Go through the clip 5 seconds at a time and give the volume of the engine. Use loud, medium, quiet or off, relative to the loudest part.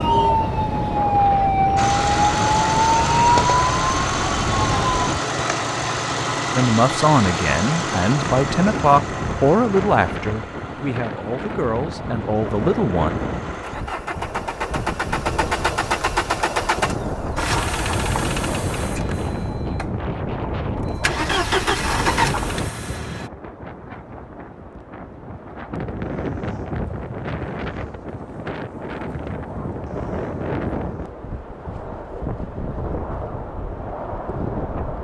loud, loud, medium, loud, loud, off, off.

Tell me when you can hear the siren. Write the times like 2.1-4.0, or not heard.
0.0-5.0.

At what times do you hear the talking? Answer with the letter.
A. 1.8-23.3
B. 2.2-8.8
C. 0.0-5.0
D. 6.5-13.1
D.